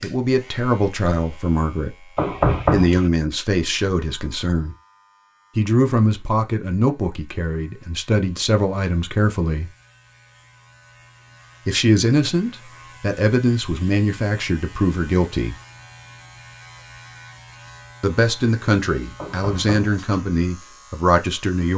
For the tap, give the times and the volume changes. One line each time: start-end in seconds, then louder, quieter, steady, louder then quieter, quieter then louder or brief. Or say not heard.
not heard.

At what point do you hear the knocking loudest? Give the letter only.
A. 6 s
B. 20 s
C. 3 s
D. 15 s
C.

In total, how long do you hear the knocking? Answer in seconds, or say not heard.
2 s.